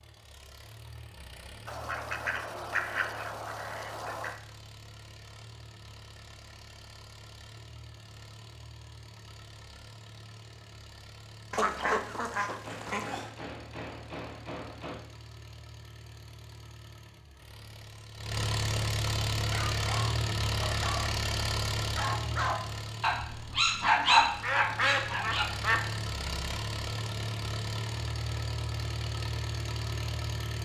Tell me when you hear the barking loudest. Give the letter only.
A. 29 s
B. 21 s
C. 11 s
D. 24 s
D.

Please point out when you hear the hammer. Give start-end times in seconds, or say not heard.
12.6-15.0.